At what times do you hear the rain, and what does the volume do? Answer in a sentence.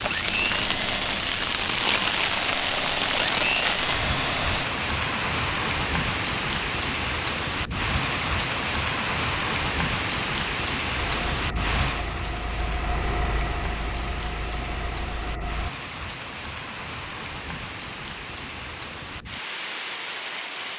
The rain can be heard from 0.0 to 20.7 s, getting quieter.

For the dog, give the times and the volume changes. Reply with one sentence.
You can't hear the dog here.